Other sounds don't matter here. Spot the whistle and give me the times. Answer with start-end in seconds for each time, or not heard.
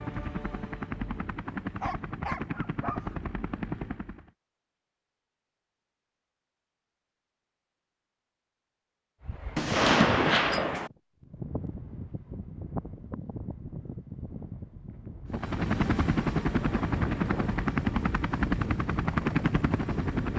not heard.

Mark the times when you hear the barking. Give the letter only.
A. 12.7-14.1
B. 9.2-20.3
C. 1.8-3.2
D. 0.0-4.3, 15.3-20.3
C.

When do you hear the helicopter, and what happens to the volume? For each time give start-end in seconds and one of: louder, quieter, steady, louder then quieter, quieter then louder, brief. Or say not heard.
0.0-4.3 steady
15.3-20.3 steady.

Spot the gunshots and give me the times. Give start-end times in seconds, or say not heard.
9.6-10.9.